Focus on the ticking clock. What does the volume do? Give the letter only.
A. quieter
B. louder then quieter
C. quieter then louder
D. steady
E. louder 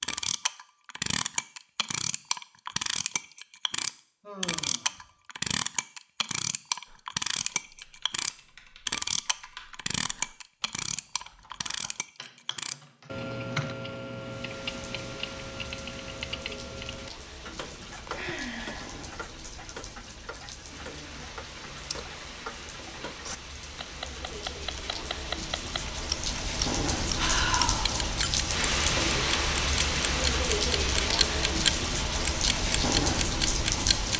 C.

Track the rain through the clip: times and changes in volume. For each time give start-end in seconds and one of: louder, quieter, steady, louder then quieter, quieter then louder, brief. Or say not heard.
14.2-34.1 louder.